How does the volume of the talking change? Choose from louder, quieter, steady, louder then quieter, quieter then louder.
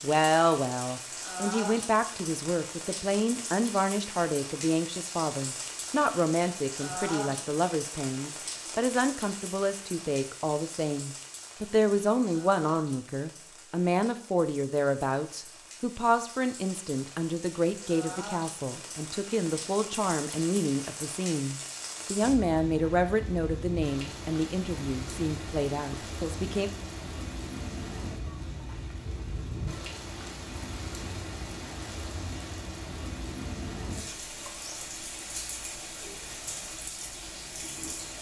steady.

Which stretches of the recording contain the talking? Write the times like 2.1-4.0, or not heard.
0.0-26.7.